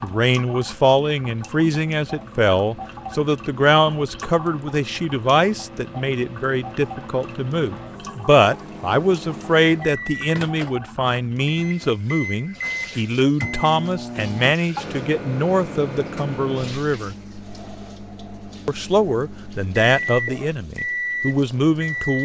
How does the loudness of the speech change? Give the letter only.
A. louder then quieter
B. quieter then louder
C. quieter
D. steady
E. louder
D.